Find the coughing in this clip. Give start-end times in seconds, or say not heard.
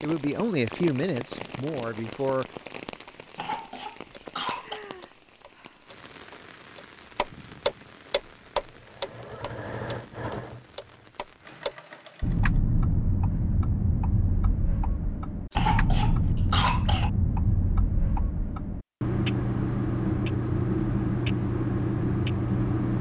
3.4-4.8, 15.5-17.1.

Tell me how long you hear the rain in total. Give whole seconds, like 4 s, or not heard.
12 s.